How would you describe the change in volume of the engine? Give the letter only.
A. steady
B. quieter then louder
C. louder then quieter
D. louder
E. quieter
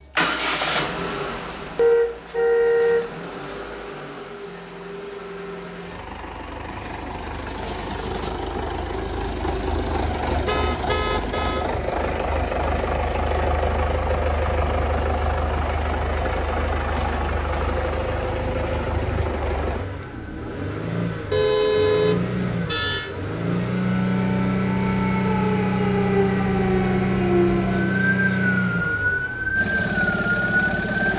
D.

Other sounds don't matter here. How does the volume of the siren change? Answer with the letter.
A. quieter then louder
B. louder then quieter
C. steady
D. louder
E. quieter
D.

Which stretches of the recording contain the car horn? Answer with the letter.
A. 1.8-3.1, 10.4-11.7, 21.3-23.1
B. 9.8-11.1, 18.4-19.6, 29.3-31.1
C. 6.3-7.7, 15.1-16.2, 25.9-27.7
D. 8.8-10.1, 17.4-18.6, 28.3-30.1
A.